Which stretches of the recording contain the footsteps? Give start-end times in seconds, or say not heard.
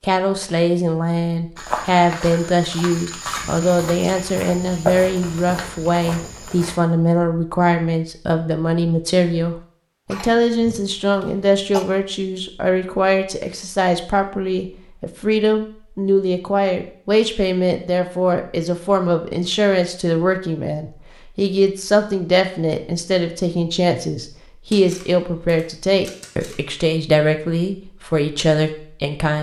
1.6-6.8.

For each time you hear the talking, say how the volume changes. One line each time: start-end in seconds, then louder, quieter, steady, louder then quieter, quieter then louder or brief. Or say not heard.
0.0-29.3 steady.